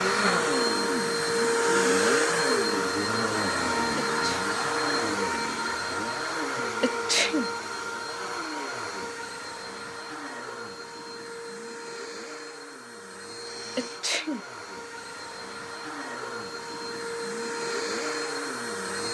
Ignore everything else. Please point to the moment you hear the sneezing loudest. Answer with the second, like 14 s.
7 s.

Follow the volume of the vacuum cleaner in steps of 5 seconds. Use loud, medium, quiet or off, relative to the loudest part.
loud, medium, quiet, medium.